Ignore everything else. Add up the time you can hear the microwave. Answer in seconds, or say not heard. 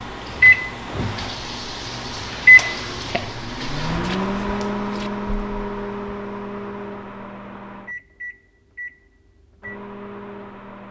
11 s.